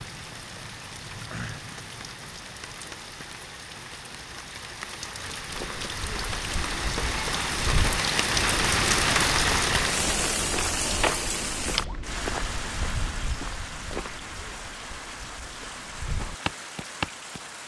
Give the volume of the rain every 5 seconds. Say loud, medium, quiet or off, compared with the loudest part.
quiet, loud, medium, quiet.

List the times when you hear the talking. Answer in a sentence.
You can't hear the talking here.